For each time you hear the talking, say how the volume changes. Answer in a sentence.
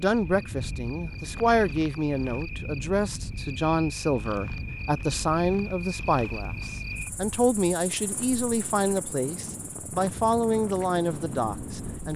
The talking can be heard from 0.0 to 12.1 s, at a steady volume.